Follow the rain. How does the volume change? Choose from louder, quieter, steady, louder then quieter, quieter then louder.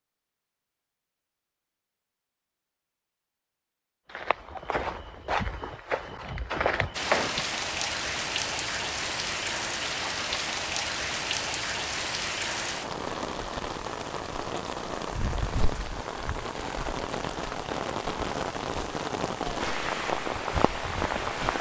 steady.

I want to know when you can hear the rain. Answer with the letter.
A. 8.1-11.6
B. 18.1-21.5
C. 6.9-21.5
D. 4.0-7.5
C.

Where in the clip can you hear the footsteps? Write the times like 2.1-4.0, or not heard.
4.0-7.5.